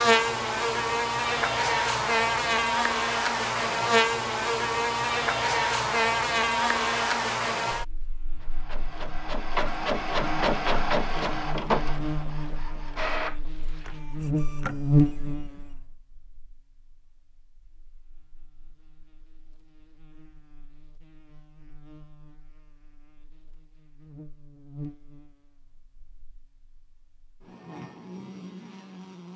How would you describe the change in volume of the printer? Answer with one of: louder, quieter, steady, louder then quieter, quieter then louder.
quieter.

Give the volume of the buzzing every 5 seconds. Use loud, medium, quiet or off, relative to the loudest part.
loud, loud, medium, medium, quiet, quiet.